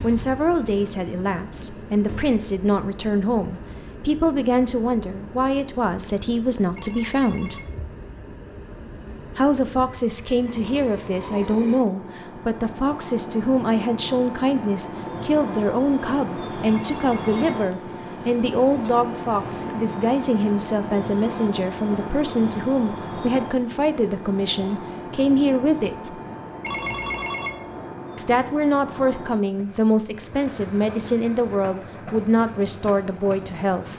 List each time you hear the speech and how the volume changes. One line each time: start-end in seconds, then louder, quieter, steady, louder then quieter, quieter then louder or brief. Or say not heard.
0.0-7.6 steady
9.3-26.2 steady
28.1-33.9 steady.